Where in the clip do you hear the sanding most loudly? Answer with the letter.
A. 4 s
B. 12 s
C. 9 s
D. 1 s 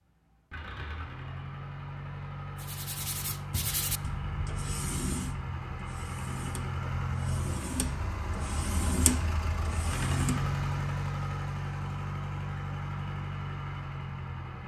C.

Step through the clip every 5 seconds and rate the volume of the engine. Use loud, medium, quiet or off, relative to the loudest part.
medium, loud, loud.